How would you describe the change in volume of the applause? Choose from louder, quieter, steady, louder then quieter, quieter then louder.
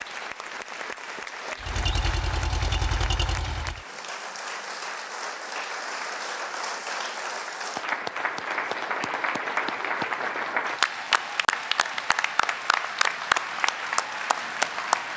louder.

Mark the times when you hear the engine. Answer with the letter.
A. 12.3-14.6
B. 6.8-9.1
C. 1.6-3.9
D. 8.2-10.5
C.